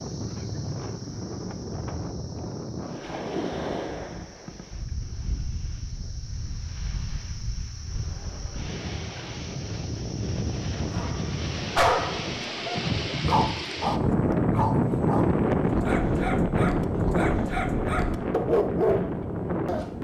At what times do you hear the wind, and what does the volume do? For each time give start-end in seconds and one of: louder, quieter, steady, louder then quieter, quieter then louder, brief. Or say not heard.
0.0-19.9 quieter then louder.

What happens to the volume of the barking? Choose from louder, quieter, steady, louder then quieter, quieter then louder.
quieter then louder.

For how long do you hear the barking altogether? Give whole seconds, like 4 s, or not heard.
9 s.